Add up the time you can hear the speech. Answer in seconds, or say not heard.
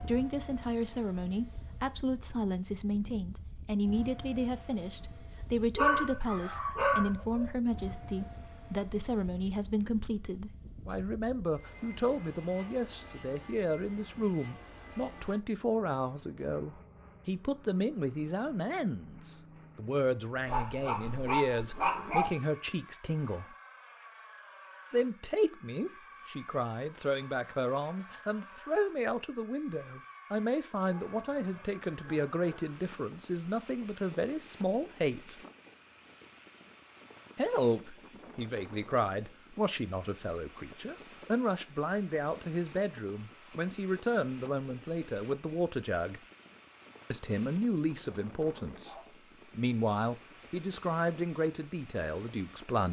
48 s.